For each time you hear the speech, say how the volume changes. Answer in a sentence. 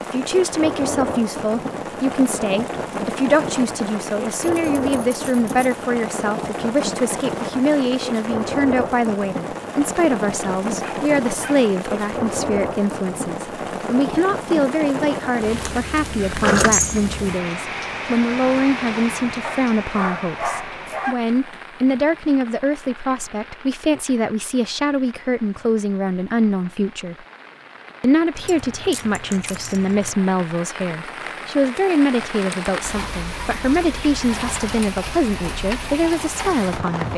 The speech can be heard from 0.0 to 27.1 s, at a steady volume; and from 28.0 to 37.1 s, at a steady volume.